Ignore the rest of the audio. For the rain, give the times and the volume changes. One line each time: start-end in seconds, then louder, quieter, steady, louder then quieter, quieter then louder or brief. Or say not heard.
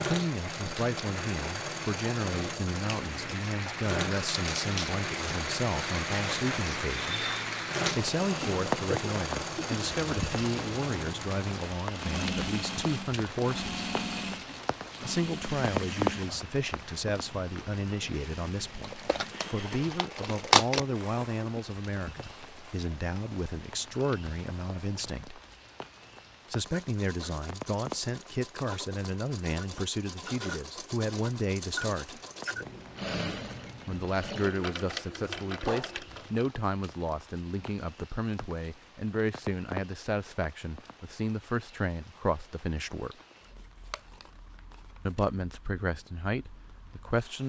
0.0-47.4 quieter.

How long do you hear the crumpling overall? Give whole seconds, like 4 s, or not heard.
4 s.